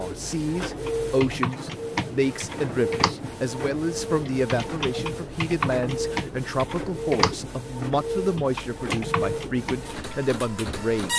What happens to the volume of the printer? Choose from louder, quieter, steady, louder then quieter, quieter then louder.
steady.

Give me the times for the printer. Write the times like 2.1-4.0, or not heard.
0.0-11.1.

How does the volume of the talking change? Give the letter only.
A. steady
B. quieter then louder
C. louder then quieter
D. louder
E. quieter
A.